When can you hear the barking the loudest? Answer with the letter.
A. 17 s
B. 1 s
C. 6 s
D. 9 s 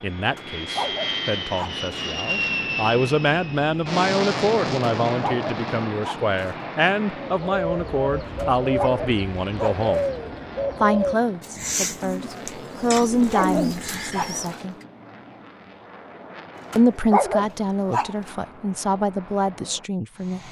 A.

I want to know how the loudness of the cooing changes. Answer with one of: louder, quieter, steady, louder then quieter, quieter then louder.
steady.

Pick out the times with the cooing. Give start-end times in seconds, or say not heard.
7.3-14.5.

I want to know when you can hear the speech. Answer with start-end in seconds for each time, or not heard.
0.0-10.1, 10.8-14.8, 16.8-20.4.